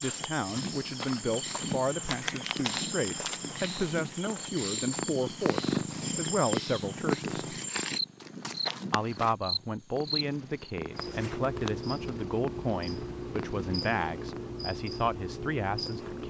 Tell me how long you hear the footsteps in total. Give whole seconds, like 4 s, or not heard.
9 s.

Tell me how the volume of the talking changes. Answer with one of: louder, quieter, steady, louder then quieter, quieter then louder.
steady.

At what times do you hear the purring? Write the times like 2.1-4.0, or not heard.
0.0-14.6.